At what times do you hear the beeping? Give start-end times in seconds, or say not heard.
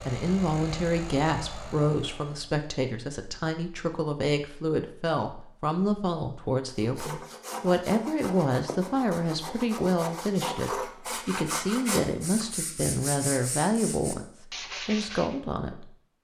not heard.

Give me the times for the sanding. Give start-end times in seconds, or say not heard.
6.8-15.3.